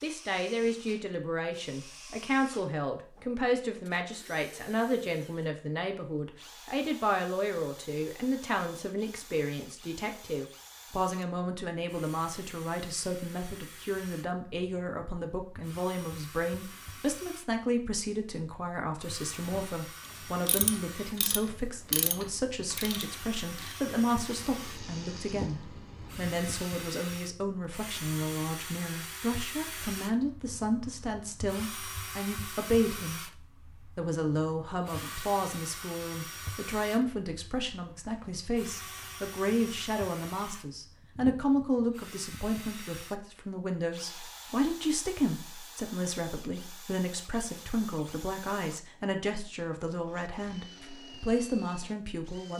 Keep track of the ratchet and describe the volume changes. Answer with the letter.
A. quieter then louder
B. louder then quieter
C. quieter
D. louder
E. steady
C.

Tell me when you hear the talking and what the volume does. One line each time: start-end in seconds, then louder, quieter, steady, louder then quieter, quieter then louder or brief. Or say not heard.
0.0-52.5 steady.